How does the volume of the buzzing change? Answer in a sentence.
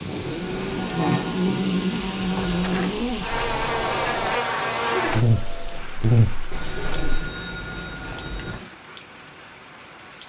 The volume of the buzzing stays about the same.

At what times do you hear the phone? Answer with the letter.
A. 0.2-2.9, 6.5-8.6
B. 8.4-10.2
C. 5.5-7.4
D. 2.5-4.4
A.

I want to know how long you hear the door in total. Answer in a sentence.
You can hear the door for 2 seconds altogether.